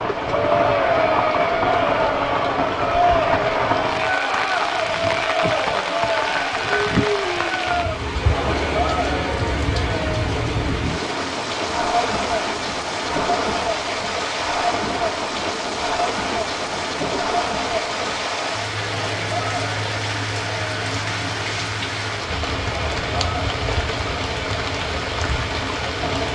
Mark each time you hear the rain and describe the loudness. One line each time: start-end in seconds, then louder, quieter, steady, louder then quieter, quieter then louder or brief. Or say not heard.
0.0-26.3 steady.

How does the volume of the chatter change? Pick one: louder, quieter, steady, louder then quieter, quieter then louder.
quieter.